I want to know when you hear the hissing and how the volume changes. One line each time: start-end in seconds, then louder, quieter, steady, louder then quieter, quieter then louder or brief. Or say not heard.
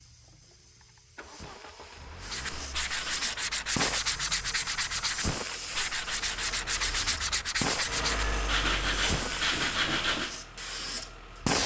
0.0-11.6 louder.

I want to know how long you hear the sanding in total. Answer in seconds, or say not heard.
8 s.